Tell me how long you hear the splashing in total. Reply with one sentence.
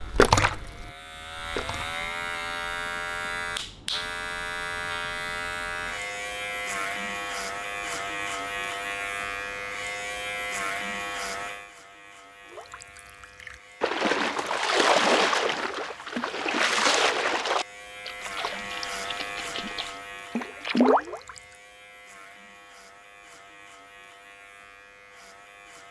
The splashing can be heard for 11 seconds in total.